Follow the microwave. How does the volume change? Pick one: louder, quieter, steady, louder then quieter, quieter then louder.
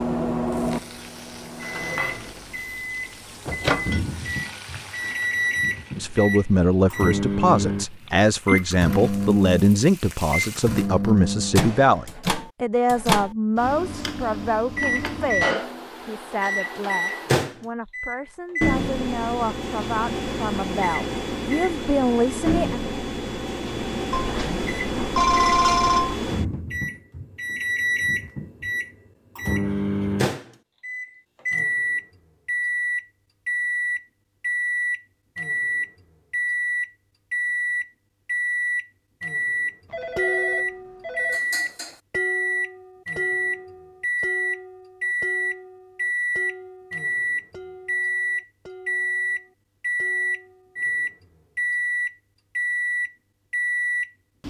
steady.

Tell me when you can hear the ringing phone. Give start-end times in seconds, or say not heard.
8.1-8.6, 24.1-26.2, 39.9-41.4.